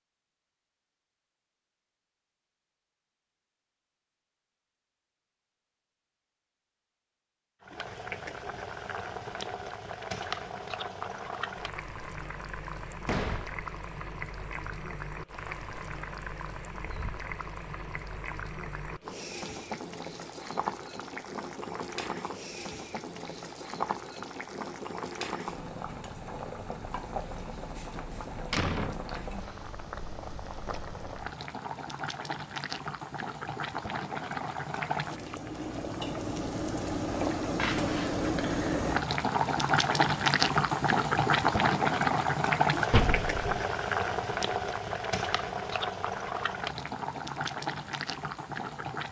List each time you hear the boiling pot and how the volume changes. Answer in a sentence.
You can hear the boiling pot from 7.6 to 49.0 s, getting louder.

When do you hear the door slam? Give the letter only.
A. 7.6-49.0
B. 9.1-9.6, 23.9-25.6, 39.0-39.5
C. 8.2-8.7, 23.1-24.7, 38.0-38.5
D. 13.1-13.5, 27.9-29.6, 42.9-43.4
D.